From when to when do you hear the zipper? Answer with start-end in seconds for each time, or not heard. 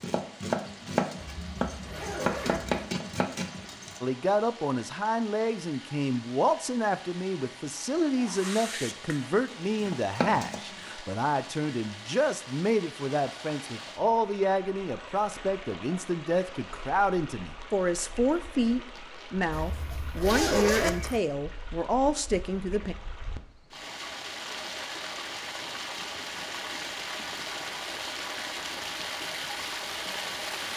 1.1-2.9, 19.5-21.2.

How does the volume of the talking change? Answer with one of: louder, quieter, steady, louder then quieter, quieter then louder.
steady.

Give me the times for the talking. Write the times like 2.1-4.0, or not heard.
4.0-22.9.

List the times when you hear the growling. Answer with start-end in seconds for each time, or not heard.
not heard.